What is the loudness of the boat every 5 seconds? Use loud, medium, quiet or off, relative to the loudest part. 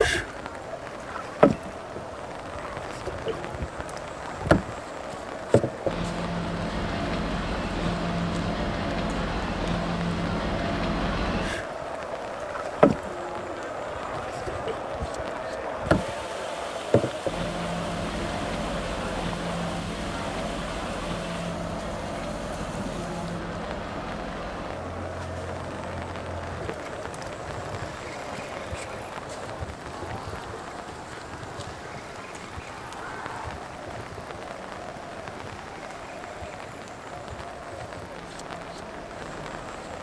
loud, loud, loud, loud, medium, quiet, quiet, quiet.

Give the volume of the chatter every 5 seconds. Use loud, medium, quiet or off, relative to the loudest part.
medium, loud, loud, loud, loud, medium, medium, medium.